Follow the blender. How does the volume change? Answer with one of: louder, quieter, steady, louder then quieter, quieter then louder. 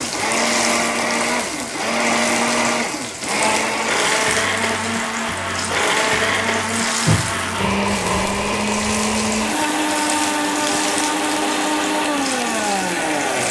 steady.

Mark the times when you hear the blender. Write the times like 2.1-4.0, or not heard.
0.0-13.4.